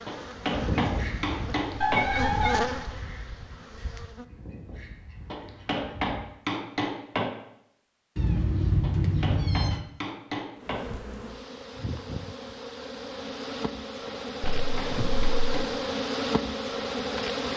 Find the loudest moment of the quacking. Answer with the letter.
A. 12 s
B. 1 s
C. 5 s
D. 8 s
B.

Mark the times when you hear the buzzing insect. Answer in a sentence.
The buzzing insect can be heard from 0.0 to 4.2 s and from 10.6 to 17.5 s.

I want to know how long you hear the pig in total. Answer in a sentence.
You can't hear the pig here.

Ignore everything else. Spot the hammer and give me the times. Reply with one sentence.
You can hear the hammer from 0.1 to 2.0 s, from 5.3 to 7.3 s, from 8.8 to 10.8 s and from 14.1 to 15.8 s.